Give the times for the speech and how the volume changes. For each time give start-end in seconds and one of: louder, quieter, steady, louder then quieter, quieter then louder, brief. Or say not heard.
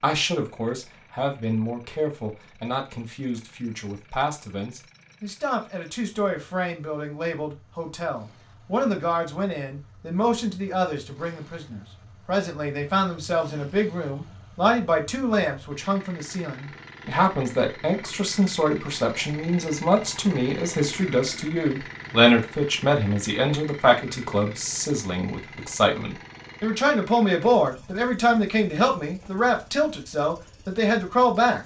0.0-31.6 louder.